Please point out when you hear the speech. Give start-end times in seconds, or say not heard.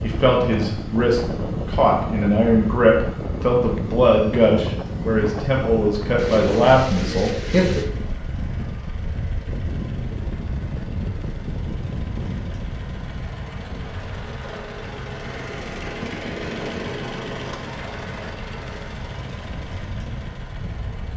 0.0-7.8.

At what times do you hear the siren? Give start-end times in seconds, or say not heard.
not heard.